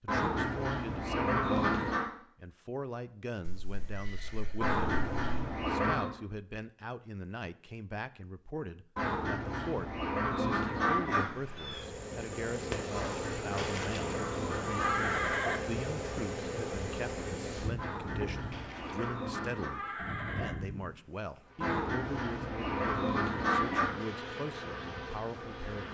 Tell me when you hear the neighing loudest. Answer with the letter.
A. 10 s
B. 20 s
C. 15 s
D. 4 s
C.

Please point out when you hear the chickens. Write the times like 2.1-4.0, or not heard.
0.1-2.0, 4.6-6.1, 8.9-11.2, 12.9-15.1, 17.8-19.7, 21.6-23.9.